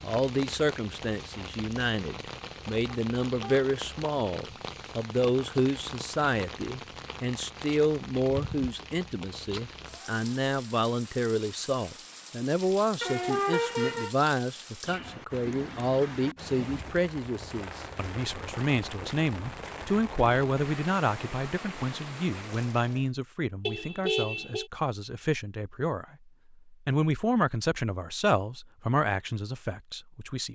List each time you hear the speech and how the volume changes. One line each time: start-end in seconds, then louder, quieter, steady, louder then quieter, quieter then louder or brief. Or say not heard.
0.0-30.5 steady.